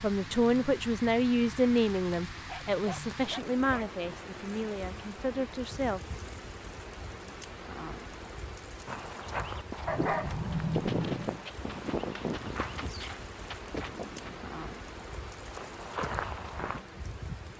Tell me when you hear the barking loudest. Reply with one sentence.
The volume of the barking peaks at 10 seconds.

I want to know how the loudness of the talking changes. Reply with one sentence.
The loudness of the talking goes down.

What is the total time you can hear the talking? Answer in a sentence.
The talking can be heard for 6 seconds in total.